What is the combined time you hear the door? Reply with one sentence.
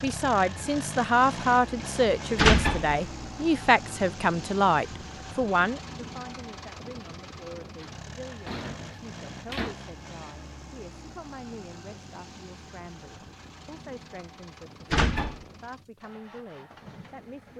The door can be heard for 3 seconds in total.